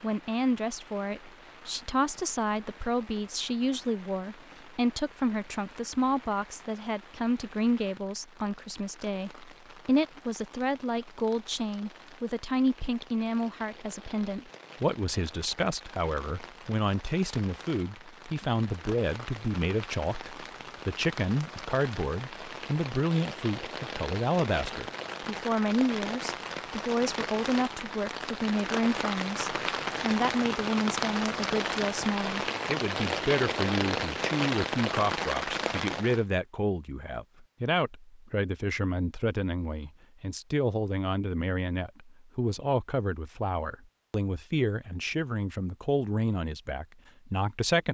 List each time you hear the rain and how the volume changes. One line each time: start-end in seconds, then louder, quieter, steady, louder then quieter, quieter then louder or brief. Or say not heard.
0.0-36.2 louder.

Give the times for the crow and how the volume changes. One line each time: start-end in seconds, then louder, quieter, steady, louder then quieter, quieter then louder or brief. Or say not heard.
not heard.